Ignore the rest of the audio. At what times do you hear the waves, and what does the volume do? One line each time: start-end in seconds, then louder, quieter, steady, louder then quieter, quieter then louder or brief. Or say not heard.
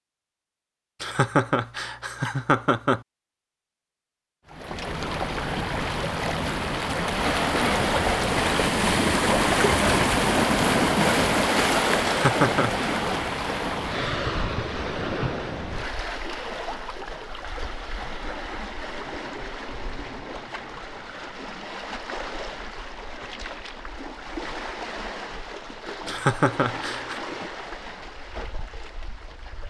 4.5-29.6 quieter.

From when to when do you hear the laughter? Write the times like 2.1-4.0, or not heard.
1.0-3.0, 12.1-12.8, 26.1-27.1.